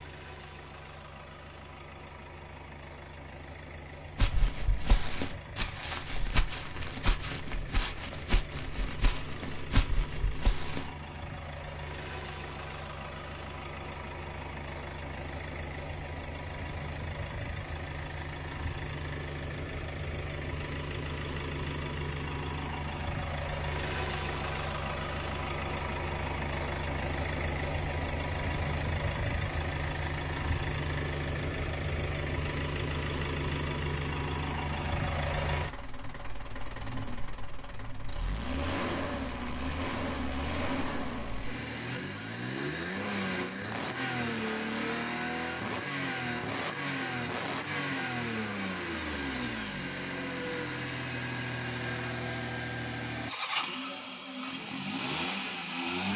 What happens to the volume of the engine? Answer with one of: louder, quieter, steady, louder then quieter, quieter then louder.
louder.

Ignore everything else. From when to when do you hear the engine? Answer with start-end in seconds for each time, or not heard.
0.0-56.1.